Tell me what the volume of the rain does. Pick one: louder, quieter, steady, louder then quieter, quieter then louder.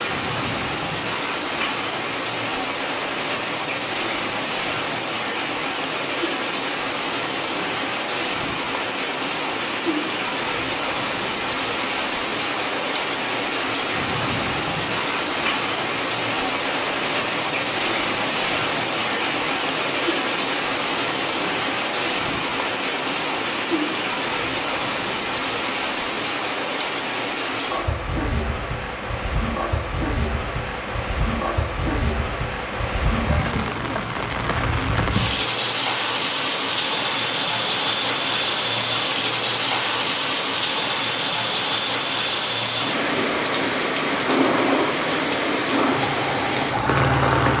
steady.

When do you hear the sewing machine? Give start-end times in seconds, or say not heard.
44.2-47.5.